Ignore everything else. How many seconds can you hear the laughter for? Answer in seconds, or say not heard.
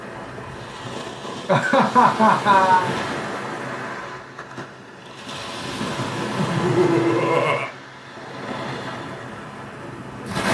3 s.